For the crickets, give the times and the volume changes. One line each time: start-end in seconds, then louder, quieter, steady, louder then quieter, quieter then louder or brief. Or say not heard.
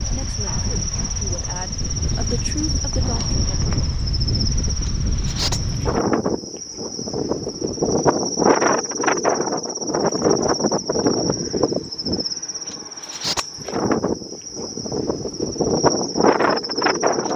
0.0-17.3 steady.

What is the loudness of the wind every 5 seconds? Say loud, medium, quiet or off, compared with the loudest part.
medium, loud, loud, loud.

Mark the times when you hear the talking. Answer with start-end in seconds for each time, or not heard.
0.0-3.6.